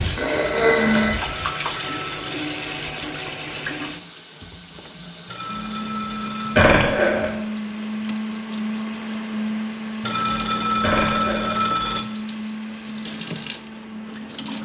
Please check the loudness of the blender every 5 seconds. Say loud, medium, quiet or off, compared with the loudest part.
off, loud, loud.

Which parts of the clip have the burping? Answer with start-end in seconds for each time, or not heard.
0.1-1.1, 6.5-7.3, 10.8-11.6.